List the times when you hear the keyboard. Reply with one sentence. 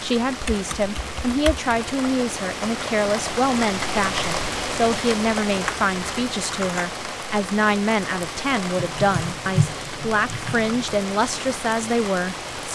The keyboard can be heard from 0.5 to 1.9 s, from 5.5 to 6.9 s and from 8.8 to 10.8 s.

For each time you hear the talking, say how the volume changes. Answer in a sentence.
The talking can be heard from 0.0 to 12.6 s, at a steady volume.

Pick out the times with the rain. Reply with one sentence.
The rain can be heard from 0.0 to 12.6 s.